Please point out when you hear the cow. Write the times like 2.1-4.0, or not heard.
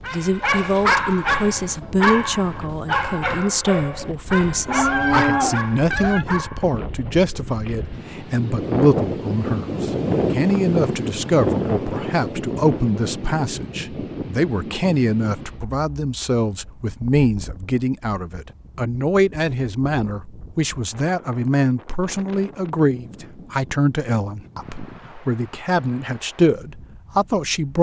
4.7-6.2.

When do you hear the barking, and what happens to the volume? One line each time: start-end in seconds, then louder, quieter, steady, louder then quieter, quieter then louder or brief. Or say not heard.
0.1-6.7 quieter.